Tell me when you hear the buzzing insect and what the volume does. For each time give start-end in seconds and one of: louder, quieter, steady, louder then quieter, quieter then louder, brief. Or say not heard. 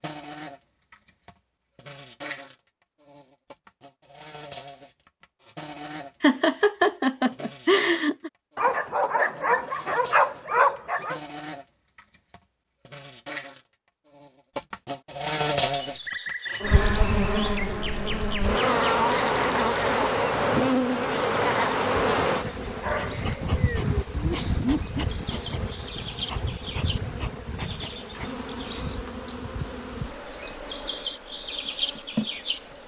0.0-32.8 louder then quieter.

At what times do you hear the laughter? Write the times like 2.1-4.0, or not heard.
6.2-8.3, 24.1-25.1.